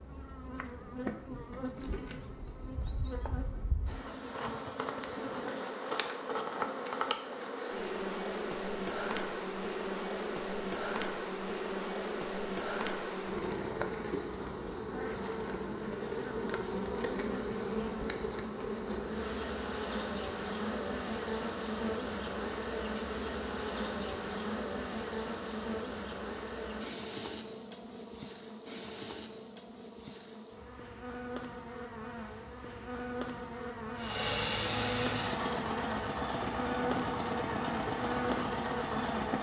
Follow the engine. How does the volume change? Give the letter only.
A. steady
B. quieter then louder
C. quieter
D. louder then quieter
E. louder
A.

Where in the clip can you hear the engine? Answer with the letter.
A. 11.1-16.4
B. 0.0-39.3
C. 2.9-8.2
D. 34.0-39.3
D.